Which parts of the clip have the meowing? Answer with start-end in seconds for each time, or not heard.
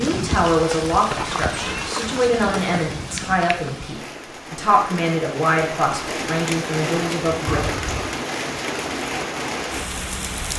0.9-1.9, 7.5-8.2.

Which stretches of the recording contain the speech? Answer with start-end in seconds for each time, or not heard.
0.0-7.6.